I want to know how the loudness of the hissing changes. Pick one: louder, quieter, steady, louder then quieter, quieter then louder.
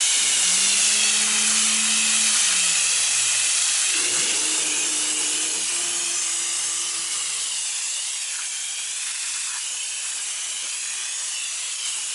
quieter.